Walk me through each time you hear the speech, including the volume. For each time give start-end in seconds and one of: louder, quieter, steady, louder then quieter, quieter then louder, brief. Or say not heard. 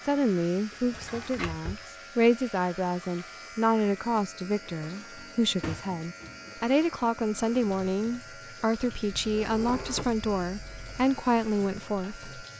0.1-12.4 steady.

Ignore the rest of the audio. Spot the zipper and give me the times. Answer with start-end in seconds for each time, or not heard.
not heard.